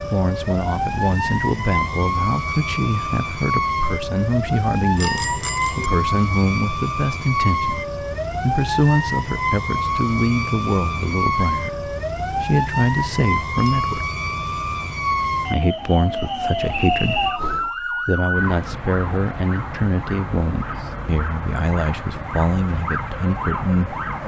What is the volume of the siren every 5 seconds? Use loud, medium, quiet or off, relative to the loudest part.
loud, loud, loud, loud, medium.